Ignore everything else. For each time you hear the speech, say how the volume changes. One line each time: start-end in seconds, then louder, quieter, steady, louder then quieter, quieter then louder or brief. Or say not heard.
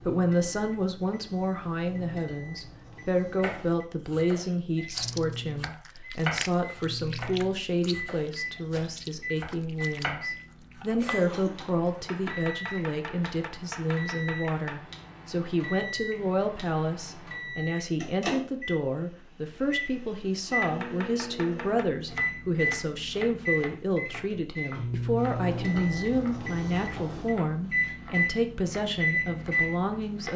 0.0-30.3 steady.